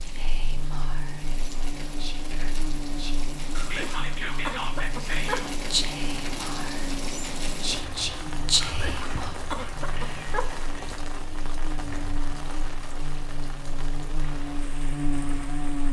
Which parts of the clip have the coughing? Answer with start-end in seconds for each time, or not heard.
3.5-5.5, 8.6-10.5.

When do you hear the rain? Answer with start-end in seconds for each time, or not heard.
0.0-15.8.